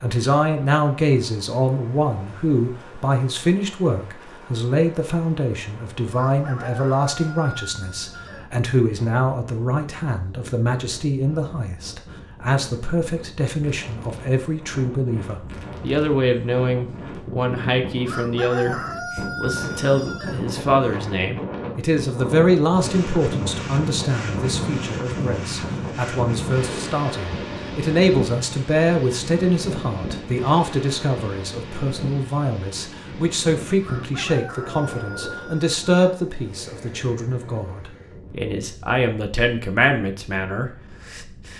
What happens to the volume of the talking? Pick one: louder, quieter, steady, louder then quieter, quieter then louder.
steady.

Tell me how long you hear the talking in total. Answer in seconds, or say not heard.
41 s.